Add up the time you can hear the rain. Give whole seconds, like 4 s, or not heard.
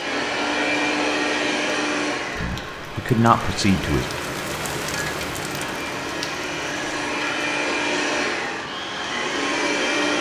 10 s.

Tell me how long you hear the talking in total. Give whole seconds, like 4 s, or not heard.
2 s.